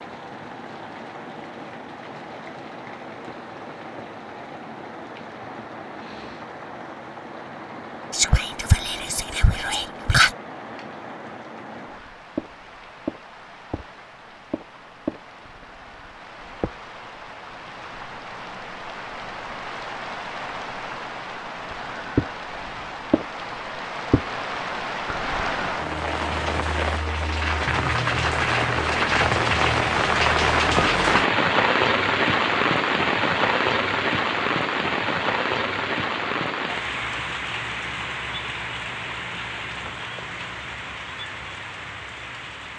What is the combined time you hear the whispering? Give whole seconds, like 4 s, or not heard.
2 s.